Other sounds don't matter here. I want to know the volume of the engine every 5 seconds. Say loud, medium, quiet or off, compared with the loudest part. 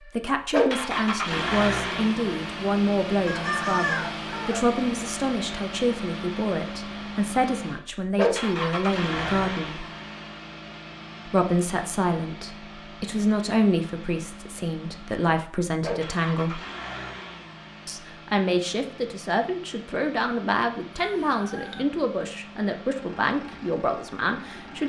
loud, loud, quiet, medium, quiet.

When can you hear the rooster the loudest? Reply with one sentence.
The volume of the rooster peaks at 4 seconds.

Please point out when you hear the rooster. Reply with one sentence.
You can hear the rooster from 3.2 to 4.8 s and from 20.9 to 21.9 s.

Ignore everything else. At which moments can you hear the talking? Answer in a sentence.
The talking can be heard from 0.1 to 9.8 s, from 11.2 to 16.6 s and from 17.9 to 24.8 s.